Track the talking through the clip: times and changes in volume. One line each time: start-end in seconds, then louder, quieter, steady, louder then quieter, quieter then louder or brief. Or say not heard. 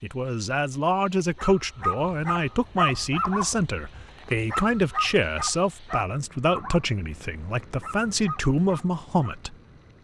0.0-9.6 steady.